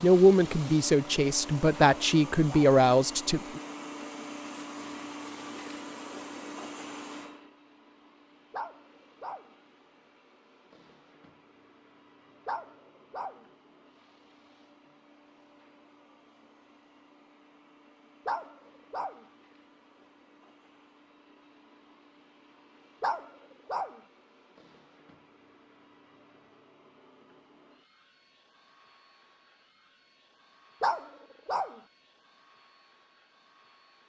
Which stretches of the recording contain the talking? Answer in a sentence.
You can hear the talking from 0.0 to 3.6 s.